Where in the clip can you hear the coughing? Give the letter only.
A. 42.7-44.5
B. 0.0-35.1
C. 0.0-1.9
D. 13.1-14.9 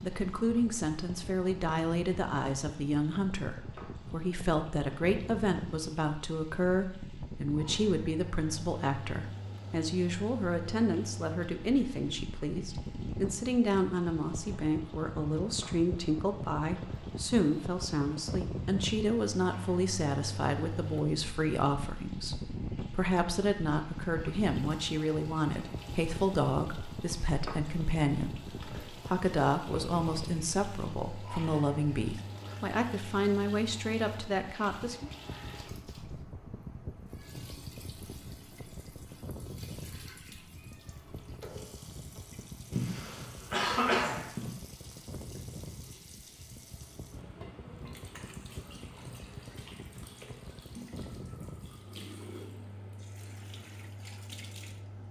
A.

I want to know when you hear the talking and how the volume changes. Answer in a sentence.
The talking can be heard from 0.0 to 35.1 s, at a steady volume.